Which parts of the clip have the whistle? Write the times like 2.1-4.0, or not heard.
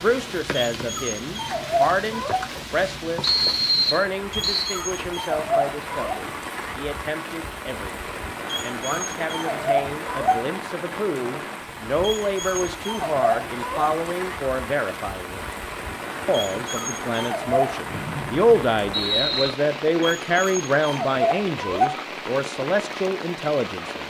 3.2-4.8, 17.9-19.5.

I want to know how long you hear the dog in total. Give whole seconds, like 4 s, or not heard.
11 s.